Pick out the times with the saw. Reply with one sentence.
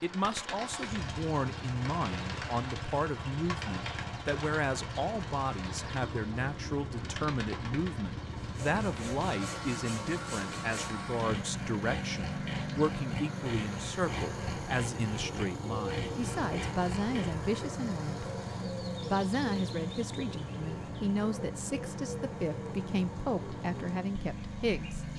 The saw can be heard from 8.4 to 17.4 s.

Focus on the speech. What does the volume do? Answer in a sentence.
The loudness of the speech stays about the same.